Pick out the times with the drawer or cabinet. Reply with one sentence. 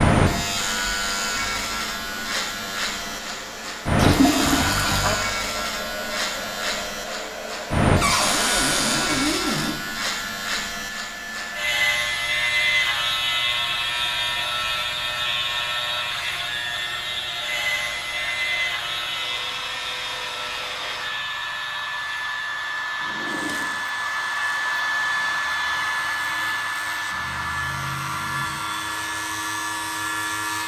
The drawer or cabinet can be heard from 8.0 to 9.8 s and from 23.0 to 23.8 s.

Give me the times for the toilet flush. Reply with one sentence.
The toilet flush can be heard from 4.0 to 5.2 s.